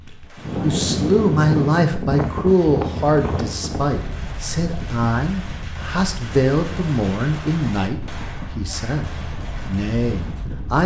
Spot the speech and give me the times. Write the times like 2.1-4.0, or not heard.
0.1-10.8.